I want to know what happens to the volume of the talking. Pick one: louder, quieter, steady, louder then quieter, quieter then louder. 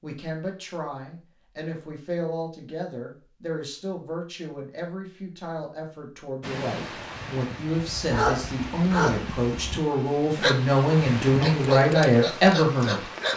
louder.